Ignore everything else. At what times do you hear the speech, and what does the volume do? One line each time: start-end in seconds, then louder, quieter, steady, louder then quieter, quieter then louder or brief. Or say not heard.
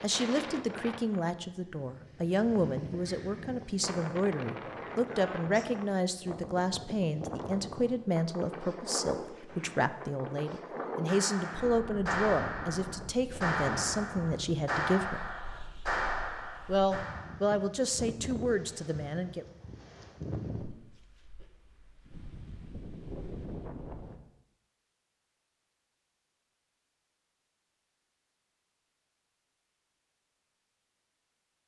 0.0-15.2 steady
16.6-19.4 brief.